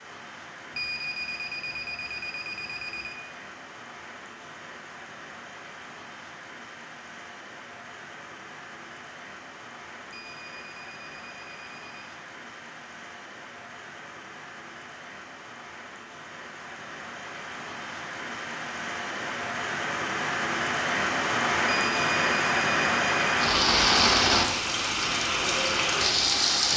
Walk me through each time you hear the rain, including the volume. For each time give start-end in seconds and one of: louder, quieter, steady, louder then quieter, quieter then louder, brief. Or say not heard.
0.0-26.7 louder.